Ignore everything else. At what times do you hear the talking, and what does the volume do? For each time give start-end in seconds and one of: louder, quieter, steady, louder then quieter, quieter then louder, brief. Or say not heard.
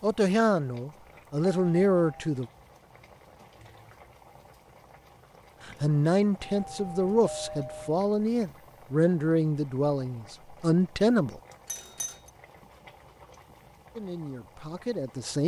0.0-2.5 brief
5.7-11.4 steady
13.9-15.4 brief.